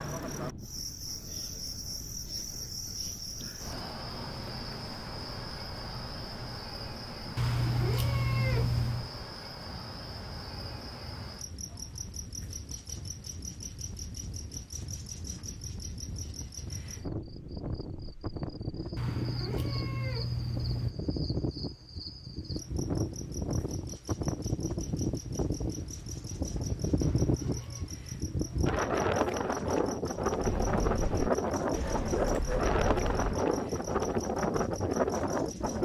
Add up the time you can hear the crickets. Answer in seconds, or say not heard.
36 s.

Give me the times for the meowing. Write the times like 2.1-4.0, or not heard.
7.3-9.1, 18.9-20.9, 27.0-27.9.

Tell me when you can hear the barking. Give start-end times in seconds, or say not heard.
30.4-33.4.